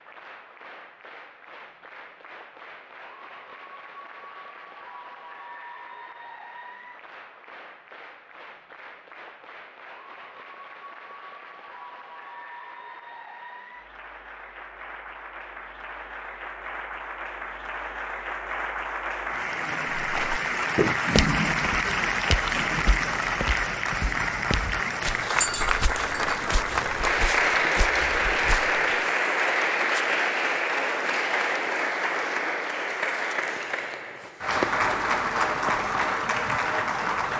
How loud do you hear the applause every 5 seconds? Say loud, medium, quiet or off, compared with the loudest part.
quiet, quiet, quiet, medium, loud, loud, loud, loud.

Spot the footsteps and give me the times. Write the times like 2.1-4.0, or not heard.
19.9-28.9.